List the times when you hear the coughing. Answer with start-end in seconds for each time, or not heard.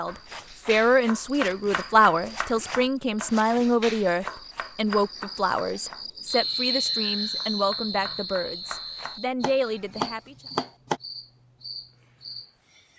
not heard.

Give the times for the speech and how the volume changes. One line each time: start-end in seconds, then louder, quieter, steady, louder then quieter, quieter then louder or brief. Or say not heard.
0.0-10.3 quieter.